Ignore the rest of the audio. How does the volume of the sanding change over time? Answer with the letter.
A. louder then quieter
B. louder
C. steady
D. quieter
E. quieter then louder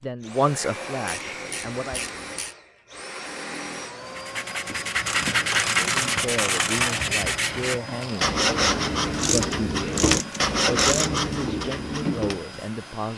C.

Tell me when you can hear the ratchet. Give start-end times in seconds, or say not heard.
1.1-2.5, 5.0-7.0, 9.1-11.2.